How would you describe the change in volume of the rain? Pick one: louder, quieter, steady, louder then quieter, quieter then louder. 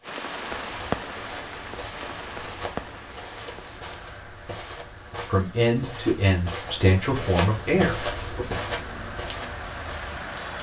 quieter then louder.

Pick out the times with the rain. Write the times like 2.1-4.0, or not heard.
0.0-10.5.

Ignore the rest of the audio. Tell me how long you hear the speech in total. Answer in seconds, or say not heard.
3 s.